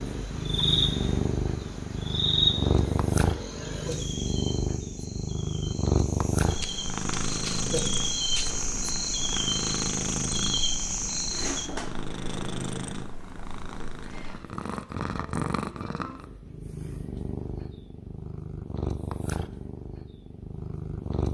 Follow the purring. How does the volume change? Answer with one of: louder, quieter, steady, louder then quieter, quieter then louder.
quieter.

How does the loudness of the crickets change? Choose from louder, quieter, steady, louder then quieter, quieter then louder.
quieter then louder.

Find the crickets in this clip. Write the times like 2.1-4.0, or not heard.
0.0-11.7.